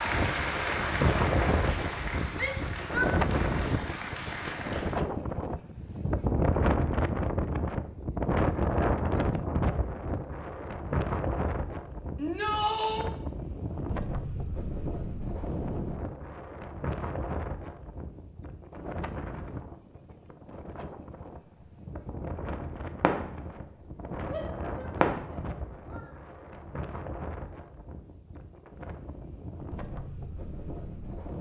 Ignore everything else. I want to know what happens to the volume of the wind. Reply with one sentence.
The volume of the wind goes down.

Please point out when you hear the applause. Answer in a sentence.
You can hear the applause from 0.0 to 5.0 s.